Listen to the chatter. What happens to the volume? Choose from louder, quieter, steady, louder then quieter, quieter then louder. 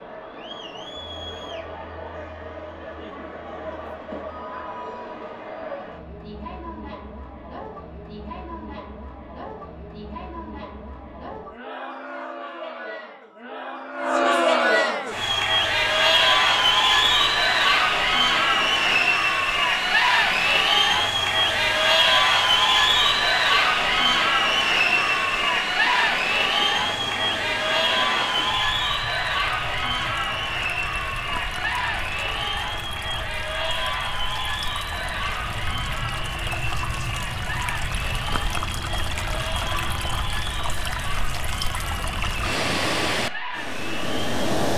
louder then quieter.